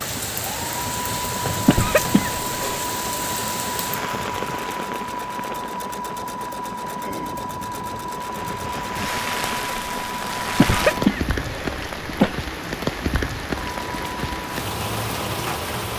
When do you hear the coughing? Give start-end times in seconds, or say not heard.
1.6-2.9, 10.6-12.3.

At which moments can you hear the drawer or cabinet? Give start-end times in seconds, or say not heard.
not heard.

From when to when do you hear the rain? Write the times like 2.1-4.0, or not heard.
0.0-15.9.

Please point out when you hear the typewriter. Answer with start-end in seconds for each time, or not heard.
not heard.